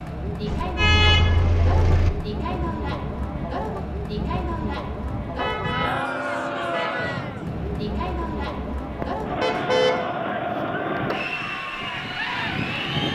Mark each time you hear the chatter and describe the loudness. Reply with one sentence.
The chatter can be heard from 0.0 to 13.1 s, at a steady volume.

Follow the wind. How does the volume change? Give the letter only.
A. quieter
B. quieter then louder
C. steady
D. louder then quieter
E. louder
C.